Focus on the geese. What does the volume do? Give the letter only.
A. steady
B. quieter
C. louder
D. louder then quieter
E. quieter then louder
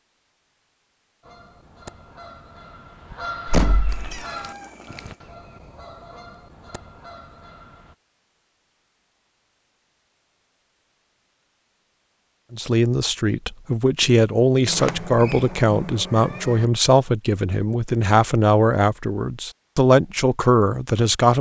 D.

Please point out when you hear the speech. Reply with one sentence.
You can hear the speech from 12.5 to 21.3 s.